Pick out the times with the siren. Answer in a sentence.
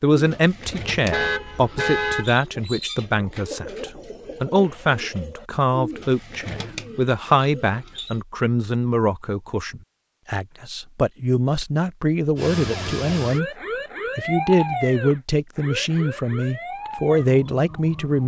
The siren can be heard from 12.3 to 18.2 s.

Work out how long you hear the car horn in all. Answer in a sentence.
You can hear the car horn for 2 seconds altogether.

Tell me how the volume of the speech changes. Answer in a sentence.
The volume of the speech stays about the same.